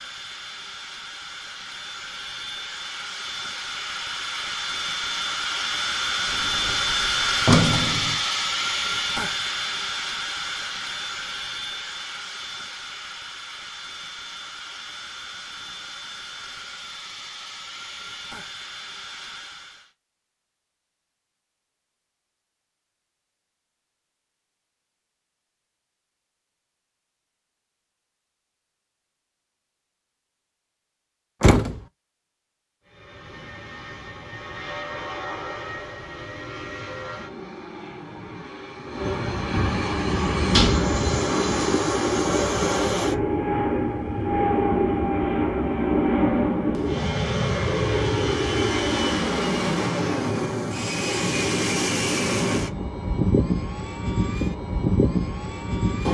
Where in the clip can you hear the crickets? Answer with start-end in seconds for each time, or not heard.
not heard.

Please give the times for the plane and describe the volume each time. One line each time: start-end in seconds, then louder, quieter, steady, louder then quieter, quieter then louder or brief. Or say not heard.
0.0-19.9 louder then quieter
32.9-56.0 louder.